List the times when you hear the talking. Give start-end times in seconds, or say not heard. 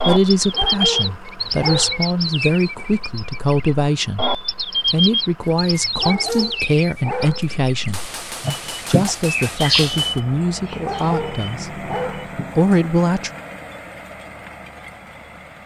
0.1-8.0, 8.8-11.8, 12.6-13.3.